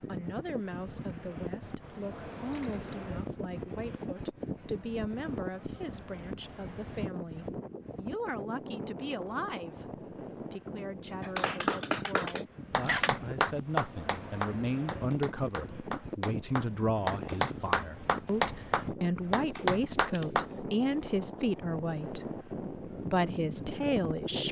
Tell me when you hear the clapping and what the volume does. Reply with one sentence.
You can hear the clapping from 11.2 to 20.6 s, getting quieter then louder.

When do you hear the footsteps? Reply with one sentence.
The footsteps can't be heard in this clip.